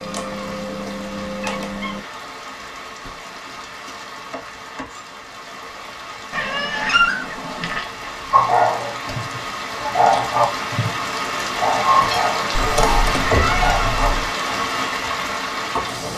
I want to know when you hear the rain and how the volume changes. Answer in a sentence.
The rain can be heard from 0.0 to 16.1 s, getting louder.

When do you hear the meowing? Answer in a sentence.
The meowing can be heard from 0.0 to 2.0 s, from 6.3 to 7.8 s and from 12.5 to 14.3 s.